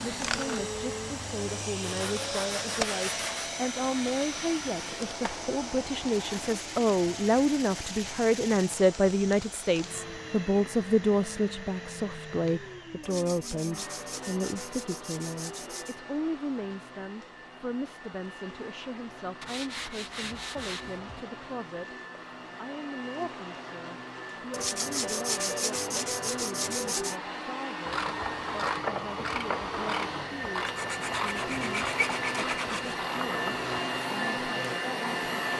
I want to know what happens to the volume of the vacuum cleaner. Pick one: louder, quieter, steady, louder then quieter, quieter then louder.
quieter then louder.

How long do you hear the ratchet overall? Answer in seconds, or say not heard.
6 s.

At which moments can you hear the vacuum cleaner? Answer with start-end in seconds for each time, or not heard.
0.0-35.5.